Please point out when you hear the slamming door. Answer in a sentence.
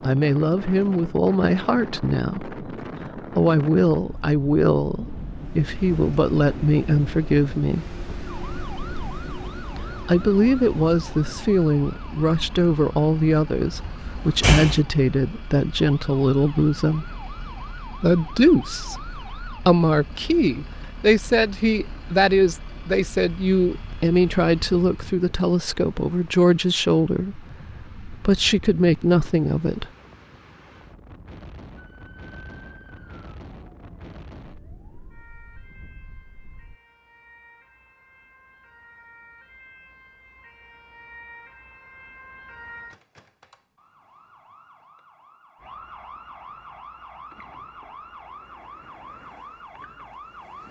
You can hear the slamming door from 13.7 to 14.8 s.